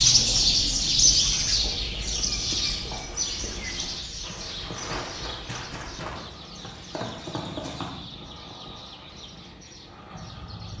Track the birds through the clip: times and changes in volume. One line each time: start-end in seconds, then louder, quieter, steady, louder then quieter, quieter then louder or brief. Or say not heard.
0.0-10.7 quieter.